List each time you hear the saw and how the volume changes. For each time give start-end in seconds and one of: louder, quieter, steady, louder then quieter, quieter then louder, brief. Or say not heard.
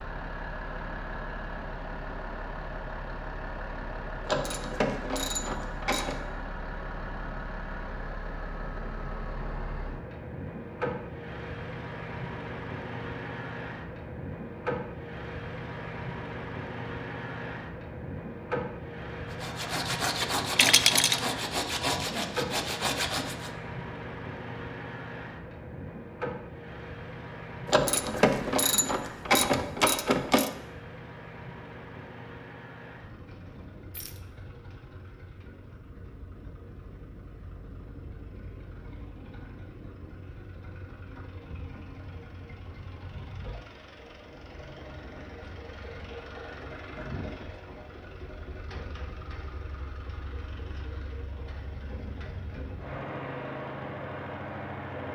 19.3-23.5 steady.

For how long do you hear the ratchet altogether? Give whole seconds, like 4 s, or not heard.
5 s.